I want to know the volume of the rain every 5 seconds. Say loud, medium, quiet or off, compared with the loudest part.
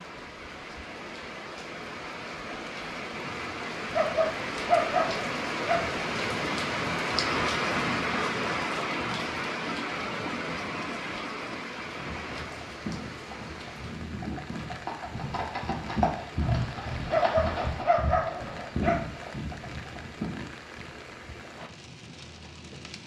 medium, loud, medium, quiet, quiet.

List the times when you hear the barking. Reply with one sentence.
The barking can be heard from 3.9 to 5.8 s and from 17.1 to 18.9 s.